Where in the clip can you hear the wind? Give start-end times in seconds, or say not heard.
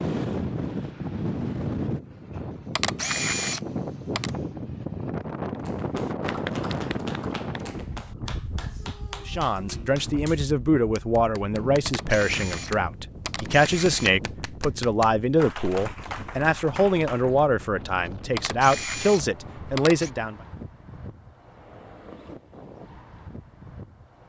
0.0-24.2.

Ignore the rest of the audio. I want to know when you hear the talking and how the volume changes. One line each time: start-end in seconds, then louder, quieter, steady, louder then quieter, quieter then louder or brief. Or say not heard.
9.2-20.4 steady.